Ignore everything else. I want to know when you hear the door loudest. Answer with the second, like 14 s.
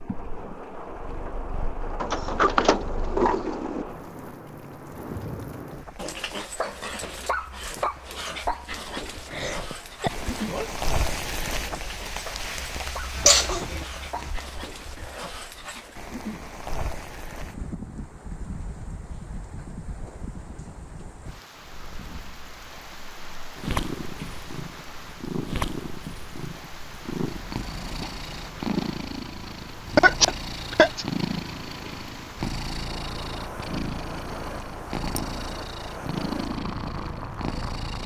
3 s.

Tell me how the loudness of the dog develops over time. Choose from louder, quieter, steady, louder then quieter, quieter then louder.
quieter.